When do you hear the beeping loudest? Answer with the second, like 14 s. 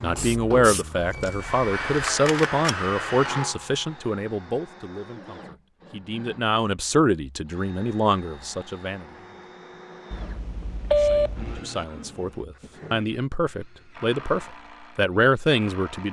11 s.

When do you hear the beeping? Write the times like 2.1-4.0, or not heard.
1.0-2.8, 10.1-11.6.